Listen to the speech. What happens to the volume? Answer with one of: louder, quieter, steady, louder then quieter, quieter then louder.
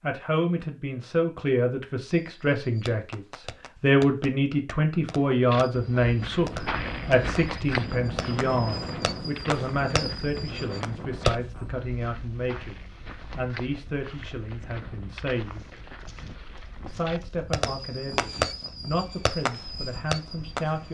quieter.